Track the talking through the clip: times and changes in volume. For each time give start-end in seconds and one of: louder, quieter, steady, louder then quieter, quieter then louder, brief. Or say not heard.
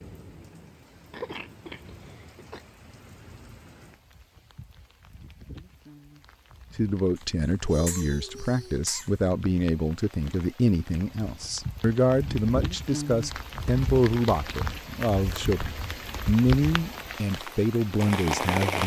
6.8-18.8 steady.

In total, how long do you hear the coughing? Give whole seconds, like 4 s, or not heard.
4 s.